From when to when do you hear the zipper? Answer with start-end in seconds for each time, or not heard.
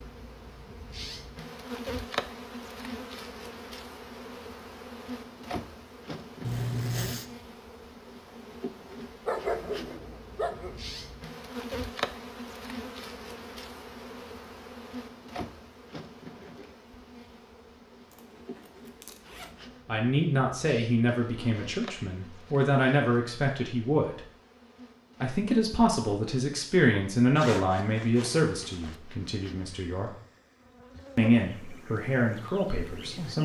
6.4-7.2, 18.1-19.5, 27.4-28.9.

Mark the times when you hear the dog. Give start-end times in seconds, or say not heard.
9.2-10.8.